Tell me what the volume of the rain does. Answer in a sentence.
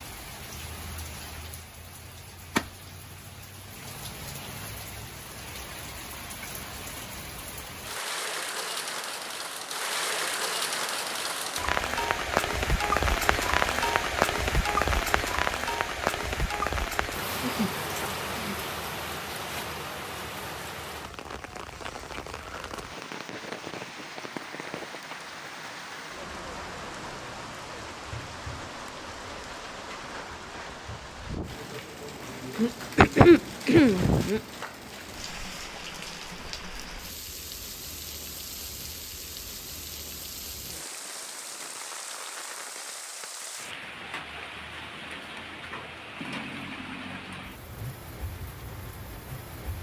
The volume of the rain goes up, then down.